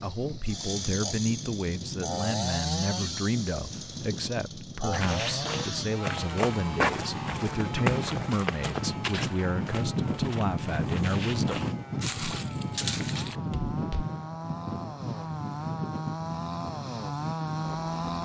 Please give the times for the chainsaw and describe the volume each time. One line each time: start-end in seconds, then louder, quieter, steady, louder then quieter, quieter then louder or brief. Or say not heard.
0.0-18.1 quieter then louder.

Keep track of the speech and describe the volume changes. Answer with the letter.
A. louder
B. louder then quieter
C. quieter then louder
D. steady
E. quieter
D.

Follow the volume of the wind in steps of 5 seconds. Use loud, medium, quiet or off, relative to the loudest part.
medium, loud, loud, medium.